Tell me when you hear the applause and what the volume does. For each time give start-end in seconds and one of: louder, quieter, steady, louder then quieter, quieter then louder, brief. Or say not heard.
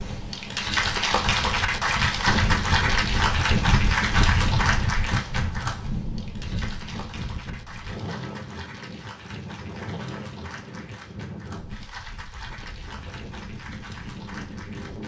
0.0-15.0 quieter.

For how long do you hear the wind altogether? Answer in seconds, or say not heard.
15 s.